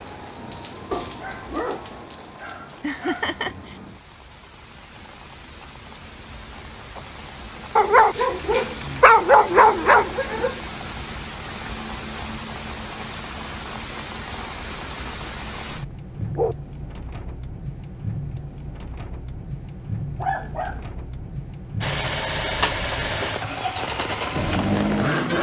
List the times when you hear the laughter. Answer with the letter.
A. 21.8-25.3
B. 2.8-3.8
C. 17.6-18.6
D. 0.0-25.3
B.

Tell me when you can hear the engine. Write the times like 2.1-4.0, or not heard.
21.8-25.3.